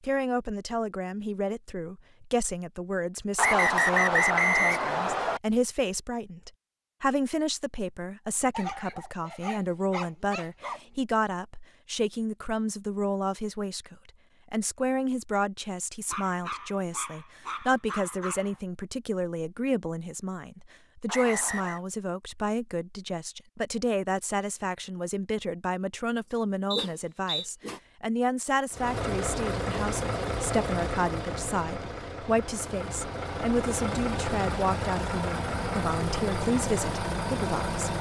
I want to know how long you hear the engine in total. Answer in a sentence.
You can hear the engine for 9 seconds altogether.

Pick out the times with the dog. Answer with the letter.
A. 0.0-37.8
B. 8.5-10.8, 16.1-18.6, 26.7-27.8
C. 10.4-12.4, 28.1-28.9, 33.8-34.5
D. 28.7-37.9
B.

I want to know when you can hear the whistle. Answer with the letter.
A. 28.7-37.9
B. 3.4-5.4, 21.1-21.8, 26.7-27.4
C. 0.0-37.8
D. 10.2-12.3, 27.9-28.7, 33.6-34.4
B.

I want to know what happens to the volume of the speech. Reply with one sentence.
The loudness of the speech stays about the same.